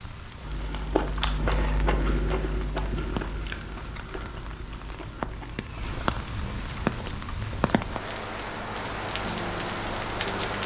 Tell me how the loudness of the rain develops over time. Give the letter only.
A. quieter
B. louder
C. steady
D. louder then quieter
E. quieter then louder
B.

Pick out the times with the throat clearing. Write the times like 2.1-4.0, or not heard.
not heard.